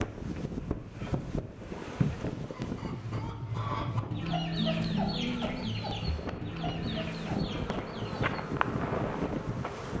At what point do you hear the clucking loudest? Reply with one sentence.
The volume of the clucking peaks at 5 seconds.